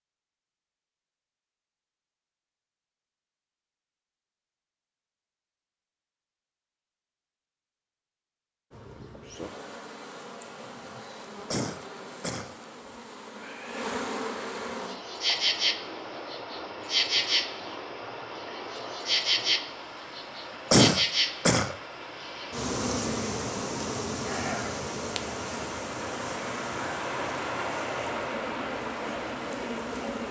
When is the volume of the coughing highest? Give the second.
21 s.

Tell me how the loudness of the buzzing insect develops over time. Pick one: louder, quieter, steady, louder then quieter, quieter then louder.
louder then quieter.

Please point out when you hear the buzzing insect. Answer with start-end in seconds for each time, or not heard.
8.7-30.2.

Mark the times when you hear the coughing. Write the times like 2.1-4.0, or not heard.
11.5-12.6, 20.7-21.8.